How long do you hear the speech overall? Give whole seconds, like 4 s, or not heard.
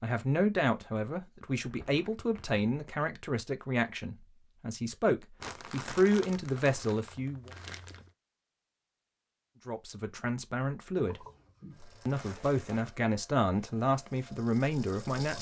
12 s.